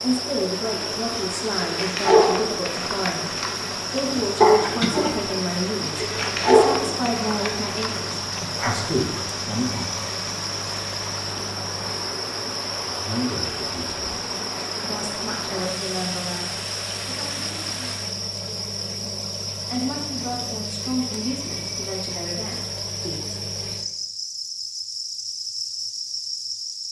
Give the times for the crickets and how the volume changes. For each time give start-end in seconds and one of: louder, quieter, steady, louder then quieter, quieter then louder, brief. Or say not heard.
0.0-26.8 steady.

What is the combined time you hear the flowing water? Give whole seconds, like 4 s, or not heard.
18 s.